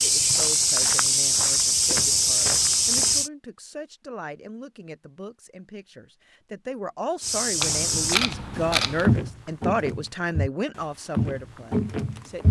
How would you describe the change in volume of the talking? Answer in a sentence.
The volume of the talking goes up.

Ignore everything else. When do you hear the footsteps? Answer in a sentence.
You can hear the footsteps from 0.0 to 3.3 s and from 7.2 to 12.4 s.